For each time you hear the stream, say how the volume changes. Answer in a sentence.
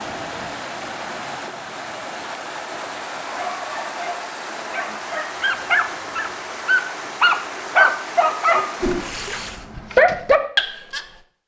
The stream can be heard from 0.0 to 9.7 s, at a steady volume.